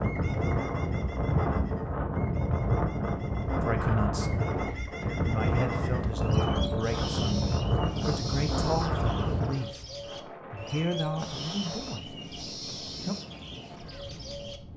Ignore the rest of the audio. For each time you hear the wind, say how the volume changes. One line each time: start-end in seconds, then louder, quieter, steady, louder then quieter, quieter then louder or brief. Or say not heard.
0.0-14.7 quieter.